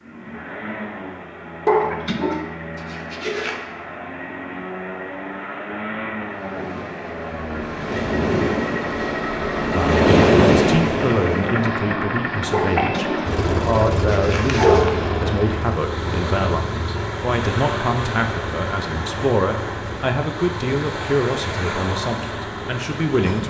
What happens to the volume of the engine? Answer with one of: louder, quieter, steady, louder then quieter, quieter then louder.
louder then quieter.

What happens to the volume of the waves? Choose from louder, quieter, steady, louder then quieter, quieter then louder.
louder then quieter.